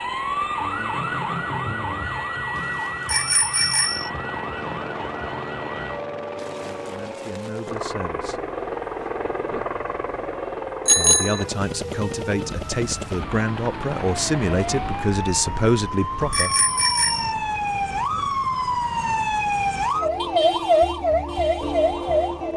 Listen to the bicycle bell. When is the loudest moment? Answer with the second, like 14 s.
11 s.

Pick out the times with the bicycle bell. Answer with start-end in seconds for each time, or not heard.
3.0-4.1, 10.8-11.4, 16.3-17.4.